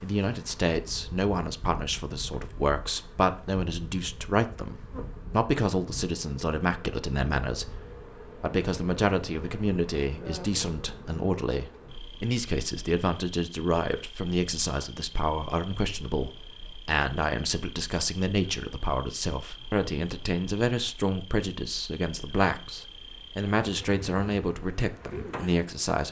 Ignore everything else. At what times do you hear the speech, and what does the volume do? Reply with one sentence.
You can hear the speech from 0.0 to 26.0 s, at a steady volume.